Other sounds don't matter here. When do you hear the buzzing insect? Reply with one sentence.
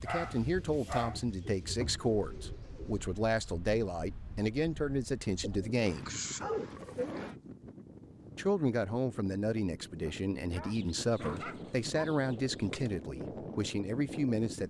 You can't hear the buzzing insect here.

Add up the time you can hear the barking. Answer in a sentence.
You can hear the barking for 5 seconds altogether.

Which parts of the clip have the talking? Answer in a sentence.
You can hear the talking from 0.0 to 6.1 s and from 8.3 to 14.6 s.